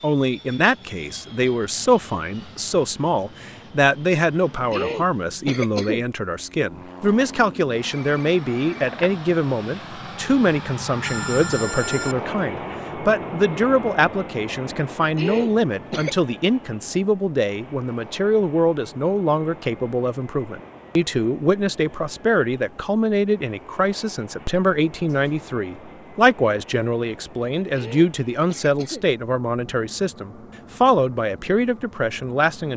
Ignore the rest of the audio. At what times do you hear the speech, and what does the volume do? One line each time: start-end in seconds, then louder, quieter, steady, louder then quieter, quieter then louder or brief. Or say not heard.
0.0-32.7 steady.